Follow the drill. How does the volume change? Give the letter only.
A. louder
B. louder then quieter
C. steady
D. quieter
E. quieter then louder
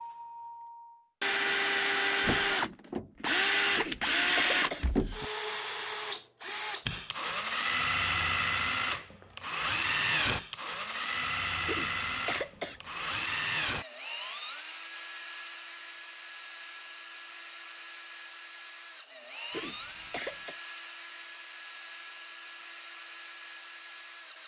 D.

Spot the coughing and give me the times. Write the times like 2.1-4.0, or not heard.
3.8-5.2, 11.7-13.1, 19.5-20.6.